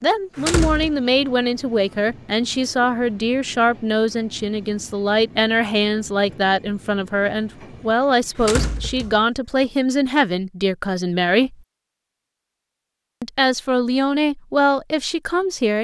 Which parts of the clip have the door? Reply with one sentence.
The door can be heard from 0.3 to 0.9 s and from 8.3 to 9.2 s.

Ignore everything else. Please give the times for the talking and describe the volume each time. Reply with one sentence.
The talking can be heard from 0.0 to 11.6 s, at a steady volume; and briefly from 13.2 to 15.7 s.